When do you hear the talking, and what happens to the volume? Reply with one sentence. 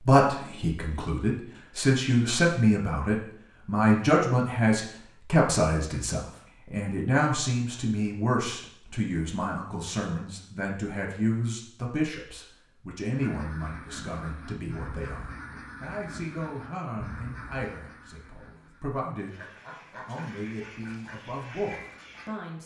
You can hear the talking from 0.0 to 22.6 s, getting quieter.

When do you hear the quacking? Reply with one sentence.
You can hear the quacking from 13.2 to 22.3 s.